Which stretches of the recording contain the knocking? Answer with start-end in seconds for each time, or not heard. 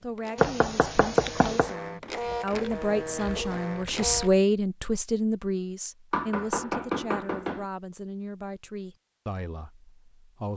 0.3-1.7, 6.1-7.7.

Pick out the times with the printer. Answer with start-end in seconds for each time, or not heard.
0.0-4.3.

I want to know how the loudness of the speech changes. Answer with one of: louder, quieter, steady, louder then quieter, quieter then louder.
louder then quieter.